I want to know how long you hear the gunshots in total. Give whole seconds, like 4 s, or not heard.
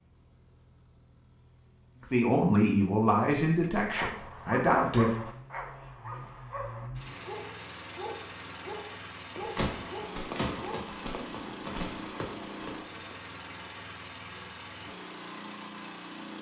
4 s.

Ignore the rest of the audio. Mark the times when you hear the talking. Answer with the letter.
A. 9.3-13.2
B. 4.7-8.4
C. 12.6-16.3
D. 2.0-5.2
D.